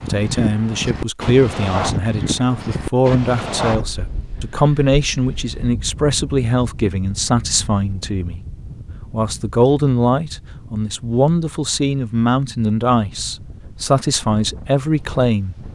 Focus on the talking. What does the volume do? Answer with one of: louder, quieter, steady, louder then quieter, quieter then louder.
steady.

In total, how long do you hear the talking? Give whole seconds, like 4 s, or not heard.
15 s.